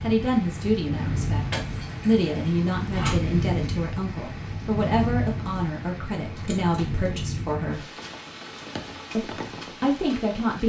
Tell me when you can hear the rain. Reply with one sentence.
The rain can be heard from 0.0 to 10.6 s.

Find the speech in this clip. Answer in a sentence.
You can hear the speech from 0.0 to 7.9 s and from 9.2 to 10.6 s.